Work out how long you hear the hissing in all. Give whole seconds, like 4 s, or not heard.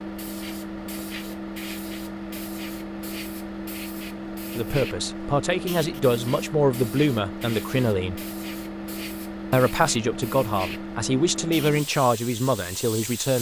13 s.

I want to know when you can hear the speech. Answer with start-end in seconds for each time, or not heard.
4.5-8.2, 9.5-13.3.